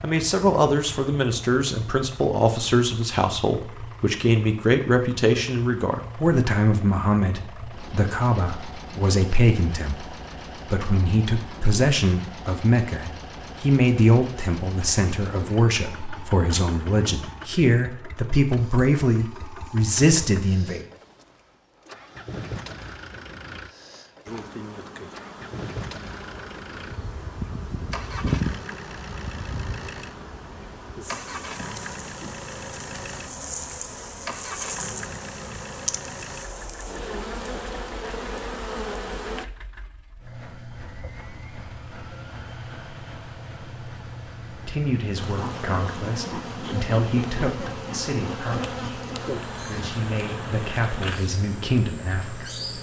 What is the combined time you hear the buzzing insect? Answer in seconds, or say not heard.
23 s.